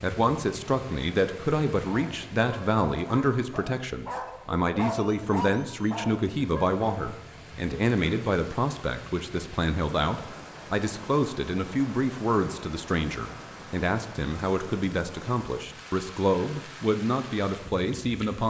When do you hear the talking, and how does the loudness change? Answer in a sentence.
You can hear the talking from 0.0 to 18.4 s, at a steady volume.